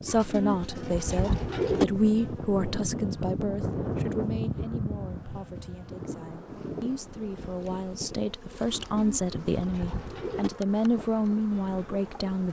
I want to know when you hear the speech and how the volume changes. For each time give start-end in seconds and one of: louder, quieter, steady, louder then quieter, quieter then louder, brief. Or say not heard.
0.0-12.4 quieter then louder.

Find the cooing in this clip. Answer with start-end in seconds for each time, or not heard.
0.1-1.9, 8.7-10.5.